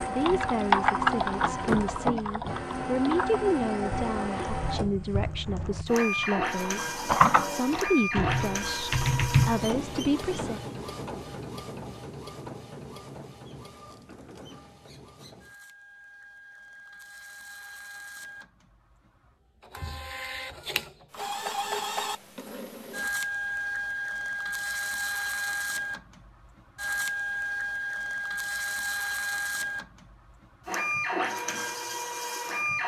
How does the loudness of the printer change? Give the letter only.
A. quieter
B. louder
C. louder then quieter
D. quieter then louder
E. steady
D.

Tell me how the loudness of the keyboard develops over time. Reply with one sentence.
The loudness of the keyboard goes down, then up.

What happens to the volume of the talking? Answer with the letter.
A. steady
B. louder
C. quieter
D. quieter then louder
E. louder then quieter
A.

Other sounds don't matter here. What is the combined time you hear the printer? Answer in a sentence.
The printer can be heard for 33 seconds in total.